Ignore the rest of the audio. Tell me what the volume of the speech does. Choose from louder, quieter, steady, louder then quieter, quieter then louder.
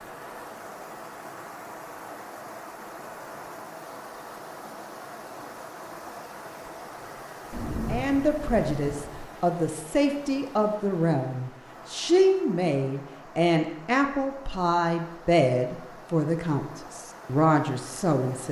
steady.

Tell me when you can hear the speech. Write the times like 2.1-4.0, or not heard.
7.8-18.4.